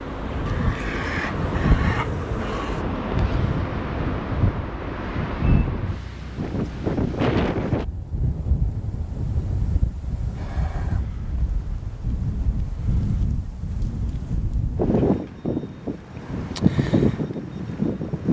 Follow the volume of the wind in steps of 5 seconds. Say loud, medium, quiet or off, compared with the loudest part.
loud, loud, medium, loud.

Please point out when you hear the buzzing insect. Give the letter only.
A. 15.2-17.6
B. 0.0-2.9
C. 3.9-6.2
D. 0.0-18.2
B.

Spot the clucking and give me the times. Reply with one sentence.
You can hear the clucking from 0.5 to 2.8 s.